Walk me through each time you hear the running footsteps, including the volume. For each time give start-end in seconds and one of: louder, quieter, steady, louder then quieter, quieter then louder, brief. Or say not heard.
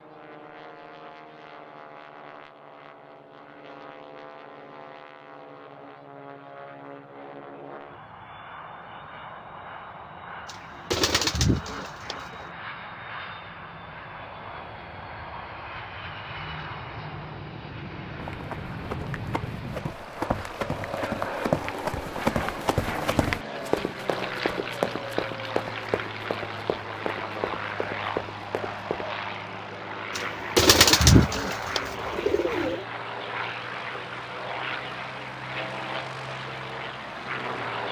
18.1-29.1 louder then quieter.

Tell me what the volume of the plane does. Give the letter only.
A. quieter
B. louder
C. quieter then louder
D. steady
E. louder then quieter
B.